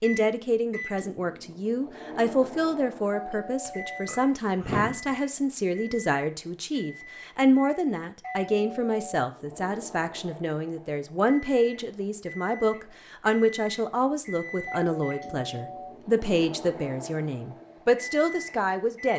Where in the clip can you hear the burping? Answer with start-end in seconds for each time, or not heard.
3.6-5.0.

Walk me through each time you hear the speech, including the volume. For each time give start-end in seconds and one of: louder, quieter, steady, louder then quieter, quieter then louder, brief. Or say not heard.
0.0-19.1 steady.